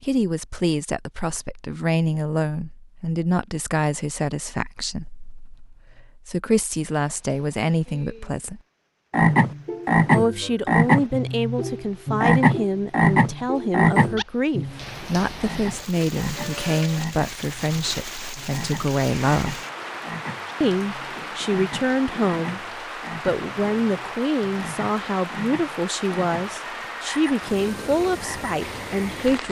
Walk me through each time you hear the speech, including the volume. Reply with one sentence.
You can hear the speech from 0.0 to 8.6 s, at a steady volume; from 10.1 to 19.6 s, at a steady volume; briefly from 20.6 to 22.6 s; and from 23.2 to 29.4 s, at a steady volume.